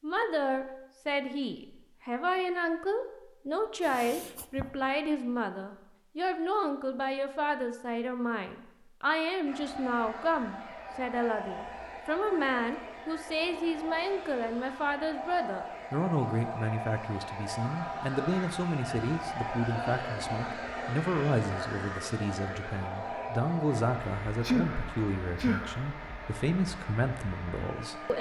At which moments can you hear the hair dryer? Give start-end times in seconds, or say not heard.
9.4-28.1.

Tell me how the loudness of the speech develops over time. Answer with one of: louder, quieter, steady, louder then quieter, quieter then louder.
steady.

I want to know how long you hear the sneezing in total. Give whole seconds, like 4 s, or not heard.
2 s.